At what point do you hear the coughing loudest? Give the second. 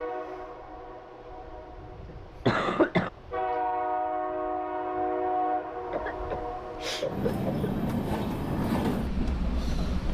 3 s.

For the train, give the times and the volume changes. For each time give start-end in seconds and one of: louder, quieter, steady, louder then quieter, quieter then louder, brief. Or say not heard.
0.0-10.1 louder.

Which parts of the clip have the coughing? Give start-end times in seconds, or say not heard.
2.5-3.1, 5.9-7.7.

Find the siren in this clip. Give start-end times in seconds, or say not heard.
not heard.